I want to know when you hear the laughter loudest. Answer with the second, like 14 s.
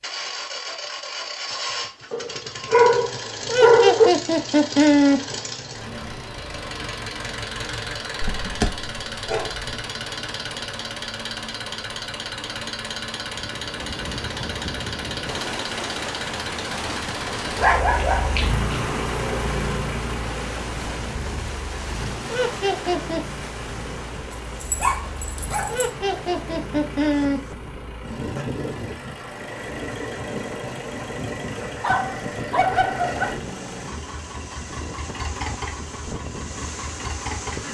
5 s.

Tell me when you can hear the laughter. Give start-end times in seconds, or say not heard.
3.5-5.2, 22.3-23.2, 25.6-27.4.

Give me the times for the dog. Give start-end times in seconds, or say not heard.
2.1-4.1, 8.2-9.7, 17.6-18.8, 24.3-25.9, 31.8-33.4.